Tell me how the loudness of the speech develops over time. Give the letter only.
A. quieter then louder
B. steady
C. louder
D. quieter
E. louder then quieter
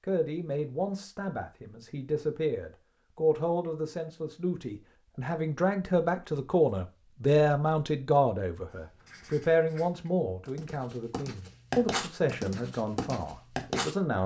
E.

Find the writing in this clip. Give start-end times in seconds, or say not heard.
9.1-13.9.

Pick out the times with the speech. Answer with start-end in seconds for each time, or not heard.
0.0-14.2.